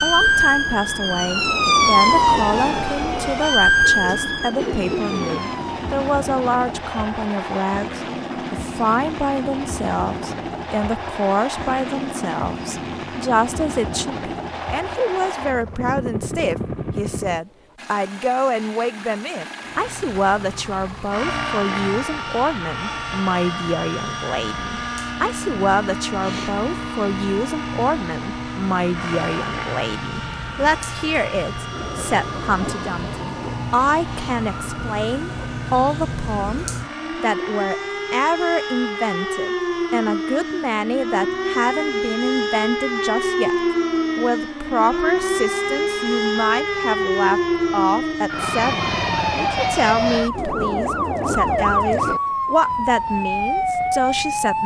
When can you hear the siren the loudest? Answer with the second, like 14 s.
2 s.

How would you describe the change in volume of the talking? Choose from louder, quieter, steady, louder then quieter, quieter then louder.
steady.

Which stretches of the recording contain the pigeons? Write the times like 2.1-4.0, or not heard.
3.8-5.4.